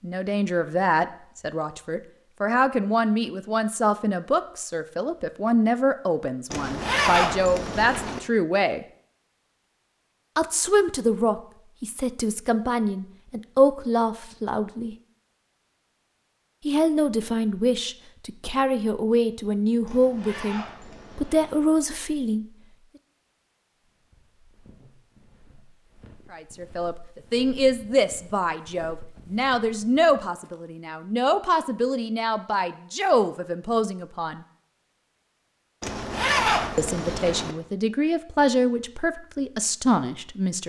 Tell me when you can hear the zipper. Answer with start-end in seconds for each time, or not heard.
6.5-8.2, 19.9-21.6, 35.8-37.5.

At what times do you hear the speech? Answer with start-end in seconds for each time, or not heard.
0.0-8.8, 10.3-14.9, 16.6-22.4, 26.3-34.5, 36.8-40.6.